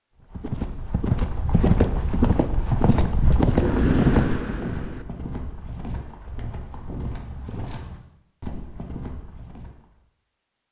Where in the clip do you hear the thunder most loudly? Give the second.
4 s.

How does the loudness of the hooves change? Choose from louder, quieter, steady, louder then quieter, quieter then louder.
quieter.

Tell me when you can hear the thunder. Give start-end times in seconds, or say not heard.
3.5-5.0.